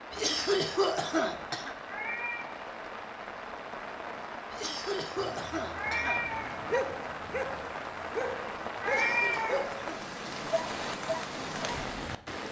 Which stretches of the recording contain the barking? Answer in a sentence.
The barking can be heard from 5.2 to 9.8 s and from 10.5 to 11.8 s.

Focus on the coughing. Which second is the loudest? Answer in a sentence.
The loudest moment of the coughing is at 1 second.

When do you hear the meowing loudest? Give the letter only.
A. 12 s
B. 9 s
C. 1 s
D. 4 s
B.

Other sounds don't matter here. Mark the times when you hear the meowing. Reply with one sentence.
The meowing can be heard from 1.9 to 2.5 s, from 5.7 to 6.6 s and from 8.8 to 9.7 s.